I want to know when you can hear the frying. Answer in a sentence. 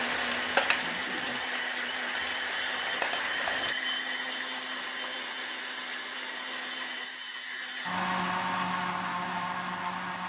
You can hear the frying from 0.0 to 3.8 s.